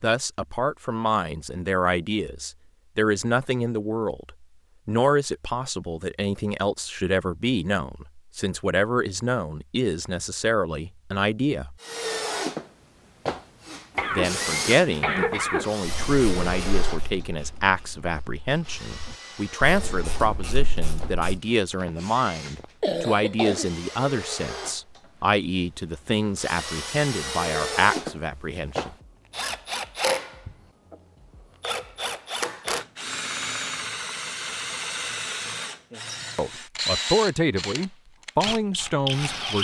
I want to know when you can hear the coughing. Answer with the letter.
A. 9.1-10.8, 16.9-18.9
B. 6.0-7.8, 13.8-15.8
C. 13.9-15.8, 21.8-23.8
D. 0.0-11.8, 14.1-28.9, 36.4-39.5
C.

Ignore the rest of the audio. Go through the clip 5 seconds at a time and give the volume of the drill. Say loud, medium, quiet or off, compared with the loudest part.
off, off, loud, medium, medium, loud, loud, loud.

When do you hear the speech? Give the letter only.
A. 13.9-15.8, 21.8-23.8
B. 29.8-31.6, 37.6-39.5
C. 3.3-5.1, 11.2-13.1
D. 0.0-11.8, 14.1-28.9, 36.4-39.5
D.